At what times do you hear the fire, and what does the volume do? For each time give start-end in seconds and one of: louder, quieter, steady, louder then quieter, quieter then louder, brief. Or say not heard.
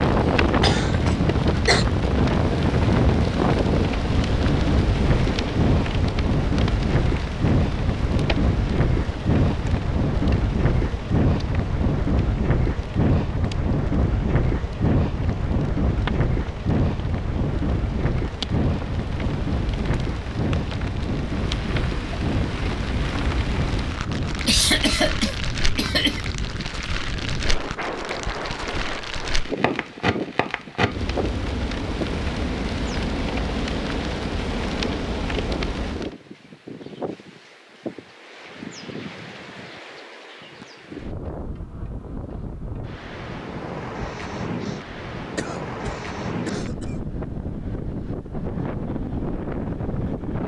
0.0-36.1 quieter then louder.